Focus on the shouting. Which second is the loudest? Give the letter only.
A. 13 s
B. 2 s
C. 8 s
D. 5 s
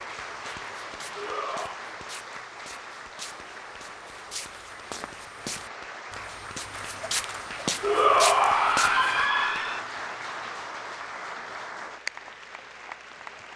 C.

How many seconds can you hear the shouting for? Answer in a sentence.
You can hear the shouting for 3 seconds altogether.